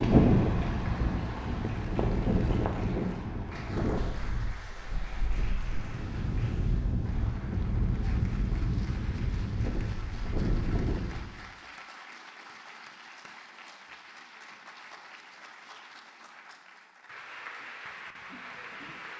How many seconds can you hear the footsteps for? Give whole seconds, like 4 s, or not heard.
not heard.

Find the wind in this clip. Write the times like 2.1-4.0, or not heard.
0.0-11.4.